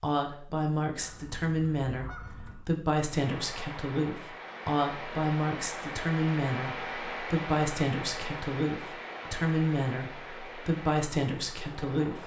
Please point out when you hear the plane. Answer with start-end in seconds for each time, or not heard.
not heard.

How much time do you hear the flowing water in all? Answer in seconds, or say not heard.
9 s.